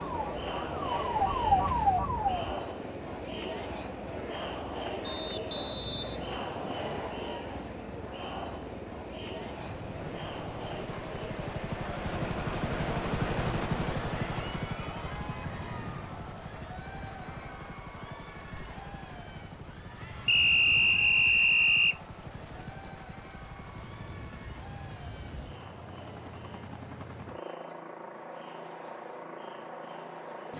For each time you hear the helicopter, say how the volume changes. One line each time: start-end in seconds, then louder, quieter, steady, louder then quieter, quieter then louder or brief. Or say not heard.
0.0-30.5 louder then quieter.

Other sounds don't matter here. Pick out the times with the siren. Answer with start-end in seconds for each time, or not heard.
0.0-2.6.